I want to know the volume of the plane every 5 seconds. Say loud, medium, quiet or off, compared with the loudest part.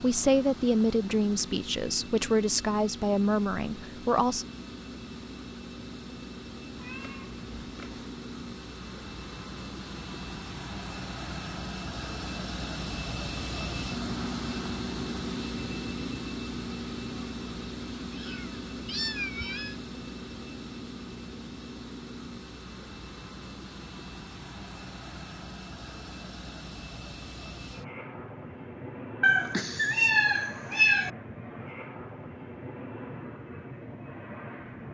medium, medium, loud, loud, medium, medium, medium.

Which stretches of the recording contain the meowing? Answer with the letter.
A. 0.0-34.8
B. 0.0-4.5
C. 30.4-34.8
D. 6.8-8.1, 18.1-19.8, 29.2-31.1
D.